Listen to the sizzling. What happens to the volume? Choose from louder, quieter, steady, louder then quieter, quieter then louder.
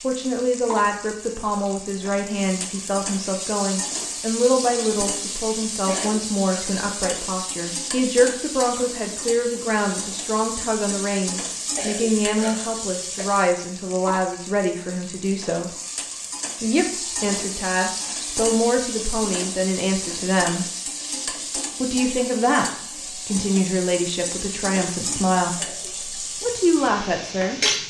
steady.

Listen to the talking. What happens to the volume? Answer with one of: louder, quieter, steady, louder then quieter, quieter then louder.
steady.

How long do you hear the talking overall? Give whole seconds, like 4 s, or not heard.
26 s.